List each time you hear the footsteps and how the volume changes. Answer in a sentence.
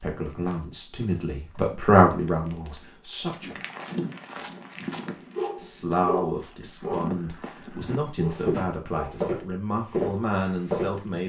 You can hear the footsteps from 0.1 to 11.1 s, getting louder.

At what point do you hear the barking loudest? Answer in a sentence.
The volume of the barking peaks at 6 seconds.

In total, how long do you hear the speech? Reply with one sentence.
The speech can be heard for 9 seconds in total.